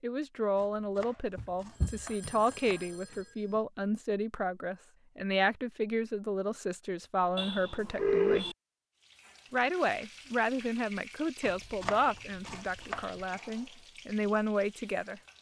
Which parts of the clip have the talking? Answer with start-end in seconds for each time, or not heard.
0.0-8.4, 9.5-15.2.